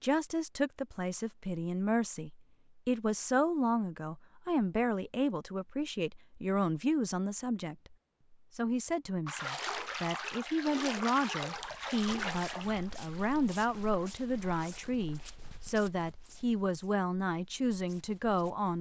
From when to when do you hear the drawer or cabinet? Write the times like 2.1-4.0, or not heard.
not heard.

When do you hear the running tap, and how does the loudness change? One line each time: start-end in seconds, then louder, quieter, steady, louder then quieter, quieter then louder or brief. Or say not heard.
9.2-14.9 quieter.